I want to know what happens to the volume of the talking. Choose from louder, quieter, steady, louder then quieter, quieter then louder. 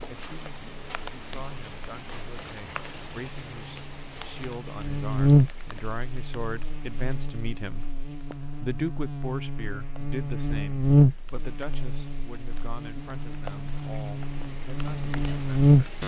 louder then quieter.